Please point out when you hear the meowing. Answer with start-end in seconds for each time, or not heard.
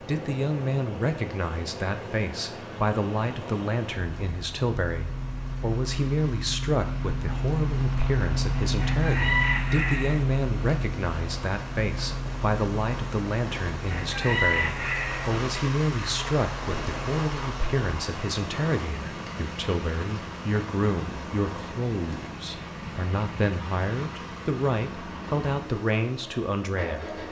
not heard.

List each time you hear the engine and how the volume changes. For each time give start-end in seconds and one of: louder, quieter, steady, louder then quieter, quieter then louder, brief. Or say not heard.
0.0-27.2 louder then quieter.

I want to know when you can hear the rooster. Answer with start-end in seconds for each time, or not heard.
8.8-10.2, 13.8-15.3.